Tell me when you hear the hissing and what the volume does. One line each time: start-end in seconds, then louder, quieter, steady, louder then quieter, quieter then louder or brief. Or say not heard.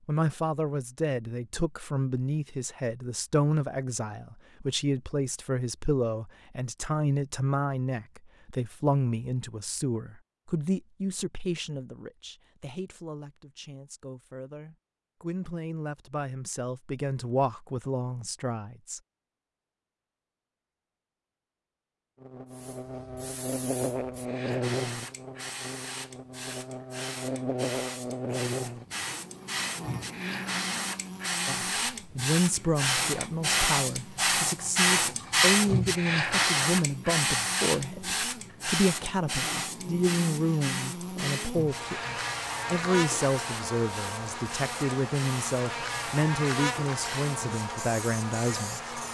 22.5-49.0 louder then quieter.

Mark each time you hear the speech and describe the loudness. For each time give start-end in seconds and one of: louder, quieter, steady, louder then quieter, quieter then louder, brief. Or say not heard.
0.1-19.0 quieter then louder
31.4-49.0 steady.